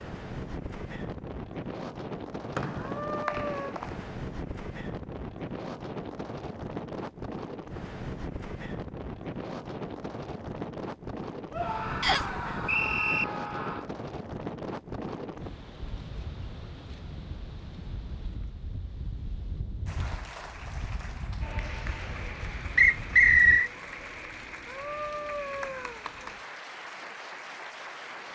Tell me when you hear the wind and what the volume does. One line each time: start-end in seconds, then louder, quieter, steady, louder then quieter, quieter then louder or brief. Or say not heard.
0.0-23.6 quieter.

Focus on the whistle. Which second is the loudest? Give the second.
23 s.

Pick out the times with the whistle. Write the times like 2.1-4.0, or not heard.
2.5-3.9, 12.0-13.2, 22.8-23.7.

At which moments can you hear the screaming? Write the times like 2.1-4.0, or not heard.
2.8-3.8, 11.5-13.9, 24.6-26.1.